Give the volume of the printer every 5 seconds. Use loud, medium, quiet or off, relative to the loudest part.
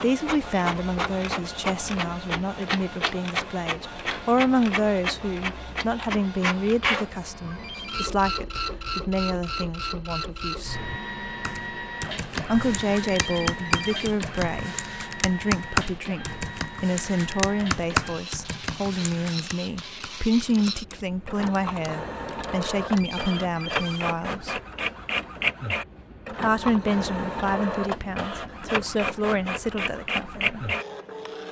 loud, loud, medium, medium, loud, loud, loud.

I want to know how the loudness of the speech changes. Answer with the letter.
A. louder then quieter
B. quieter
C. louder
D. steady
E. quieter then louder
D.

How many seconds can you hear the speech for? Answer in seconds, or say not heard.
27 s.